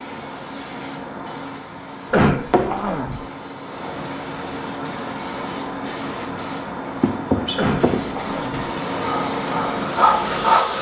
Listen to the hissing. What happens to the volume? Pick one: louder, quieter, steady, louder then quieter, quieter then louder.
louder.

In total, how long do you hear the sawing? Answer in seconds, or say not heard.
2 s.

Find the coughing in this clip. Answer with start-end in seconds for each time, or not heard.
2.1-3.2, 7.5-8.6.